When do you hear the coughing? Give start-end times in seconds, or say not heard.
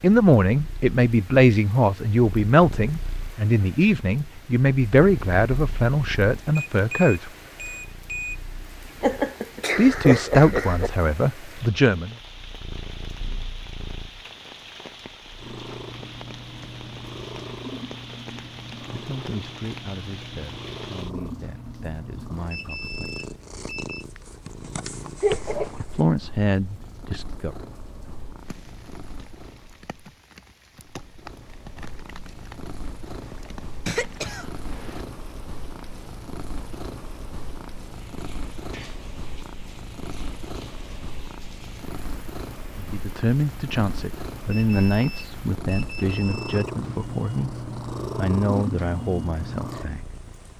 9.0-10.9, 25.2-26.1, 33.9-35.0.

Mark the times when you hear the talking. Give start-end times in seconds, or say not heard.
0.0-7.3, 9.8-12.2, 18.9-23.2, 25.8-27.6, 42.8-50.1.